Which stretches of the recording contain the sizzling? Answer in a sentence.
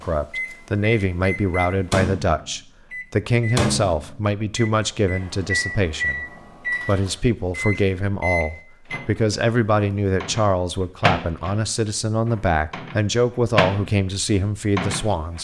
You can't hear the sizzling here.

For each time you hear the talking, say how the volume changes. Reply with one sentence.
The talking can be heard from 0.0 to 15.3 s, at a steady volume.